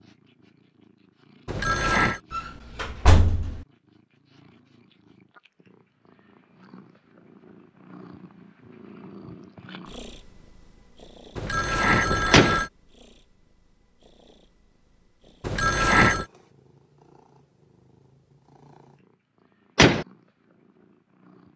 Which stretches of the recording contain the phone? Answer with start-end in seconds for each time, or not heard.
1.4-2.2, 11.3-12.7, 15.4-16.2.